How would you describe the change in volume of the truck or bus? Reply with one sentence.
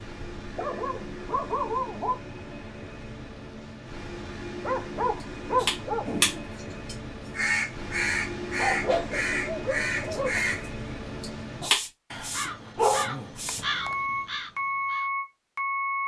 The loudness of the truck or bus goes up.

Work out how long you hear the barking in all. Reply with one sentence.
You can hear the barking for 7 seconds altogether.